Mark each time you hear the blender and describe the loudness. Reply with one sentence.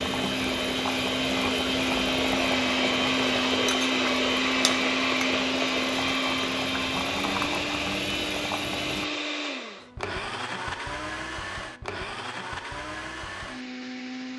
The blender can be heard from 0.0 to 14.3 s, getting quieter.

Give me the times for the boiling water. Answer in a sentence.
You can hear the boiling water from 0.0 to 9.1 s.